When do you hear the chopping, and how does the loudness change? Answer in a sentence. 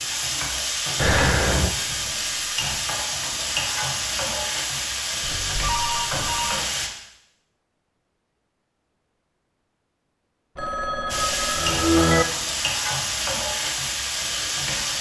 The chopping can't be heard in this clip.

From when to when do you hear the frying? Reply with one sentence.
You can hear the frying from 0.0 to 6.9 s and from 11.1 to 14.9 s.